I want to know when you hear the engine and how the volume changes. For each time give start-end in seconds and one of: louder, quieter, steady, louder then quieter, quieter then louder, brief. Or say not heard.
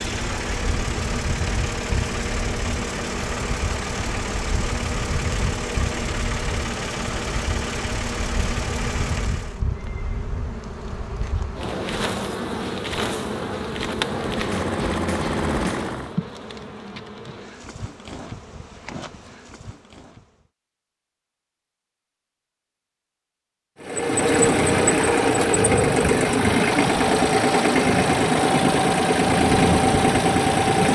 0.0-9.6 steady
14.1-16.1 brief
23.8-30.9 steady.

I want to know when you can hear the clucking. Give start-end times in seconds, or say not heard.
not heard.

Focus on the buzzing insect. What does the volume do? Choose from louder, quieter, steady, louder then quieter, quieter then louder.
louder then quieter.